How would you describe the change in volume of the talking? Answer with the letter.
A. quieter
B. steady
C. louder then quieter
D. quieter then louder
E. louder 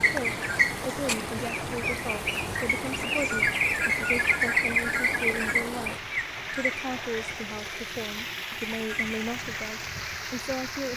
B.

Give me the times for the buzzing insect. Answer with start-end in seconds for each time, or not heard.
not heard.